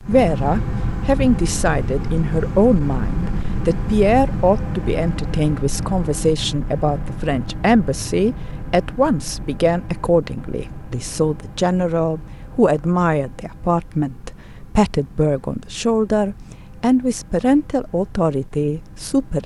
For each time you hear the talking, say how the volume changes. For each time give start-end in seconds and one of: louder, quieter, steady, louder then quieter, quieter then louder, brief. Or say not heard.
0.0-19.4 steady.